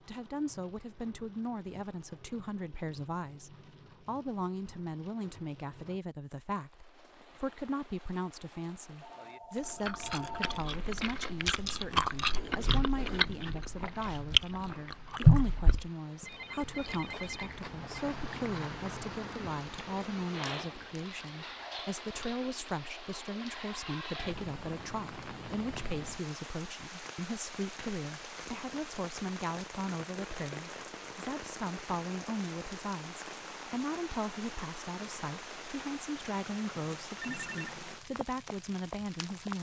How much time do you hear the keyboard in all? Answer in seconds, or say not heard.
not heard.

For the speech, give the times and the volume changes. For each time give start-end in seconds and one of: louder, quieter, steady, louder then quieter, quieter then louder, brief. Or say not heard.
0.1-39.5 steady.